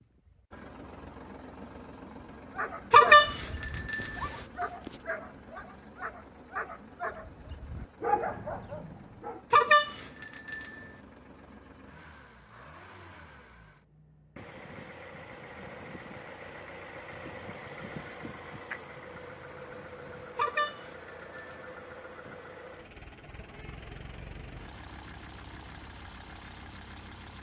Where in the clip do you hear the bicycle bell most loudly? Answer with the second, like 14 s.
3 s.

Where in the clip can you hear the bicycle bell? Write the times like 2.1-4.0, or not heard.
2.9-4.4, 9.5-11.0, 20.4-21.9.